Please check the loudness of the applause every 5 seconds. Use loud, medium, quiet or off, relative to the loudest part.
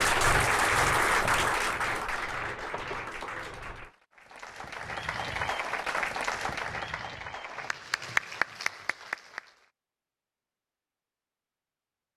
loud, loud, off.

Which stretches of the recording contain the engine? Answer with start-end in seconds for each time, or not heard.
0.0-4.0.